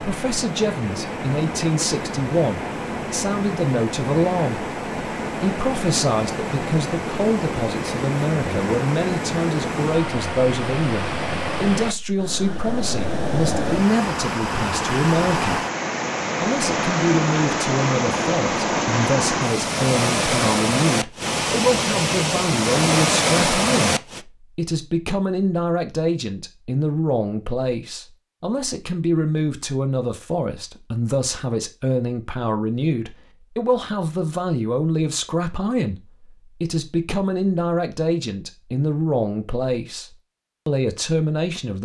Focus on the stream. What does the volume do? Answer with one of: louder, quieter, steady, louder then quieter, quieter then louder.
louder.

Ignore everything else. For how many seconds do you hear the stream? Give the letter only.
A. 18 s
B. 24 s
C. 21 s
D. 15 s
B.